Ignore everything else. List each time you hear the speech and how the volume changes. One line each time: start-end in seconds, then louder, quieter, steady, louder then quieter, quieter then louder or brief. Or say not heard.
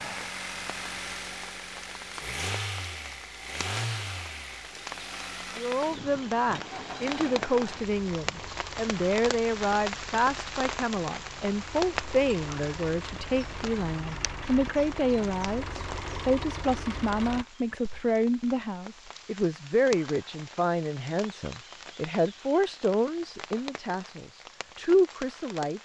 5.5-25.8 steady.